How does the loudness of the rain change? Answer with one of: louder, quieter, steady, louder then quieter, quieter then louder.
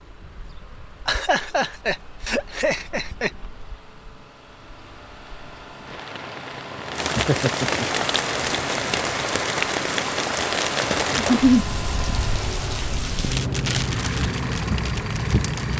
louder.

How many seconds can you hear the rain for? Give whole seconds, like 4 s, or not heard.
16 s.